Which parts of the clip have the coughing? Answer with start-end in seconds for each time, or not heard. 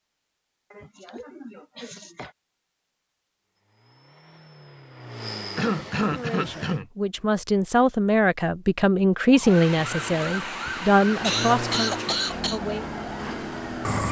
0.7-2.4, 5.5-6.8, 10.2-12.6.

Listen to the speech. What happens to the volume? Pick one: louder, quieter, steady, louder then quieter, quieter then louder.
louder then quieter.